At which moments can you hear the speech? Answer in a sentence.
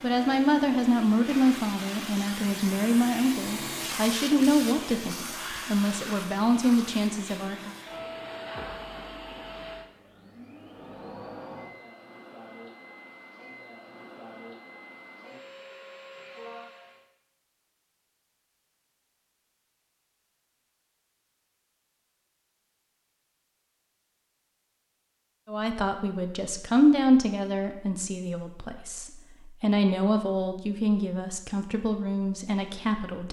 You can hear the speech from 0.0 to 7.8 s and from 25.4 to 33.2 s.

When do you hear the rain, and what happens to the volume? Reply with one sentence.
You can't hear the rain here.